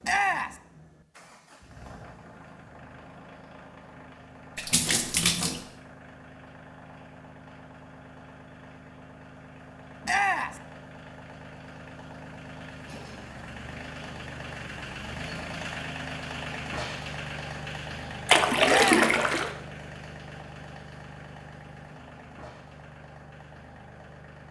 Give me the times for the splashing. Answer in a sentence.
The splashing can be heard from 4.5 to 5.7 s and from 18.2 to 19.6 s.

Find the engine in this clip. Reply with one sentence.
The engine can be heard from 0.0 to 24.4 s.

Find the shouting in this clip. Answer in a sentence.
You can hear the shouting from 0.0 to 0.6 s, from 10.1 to 10.6 s and from 18.6 to 19.1 s.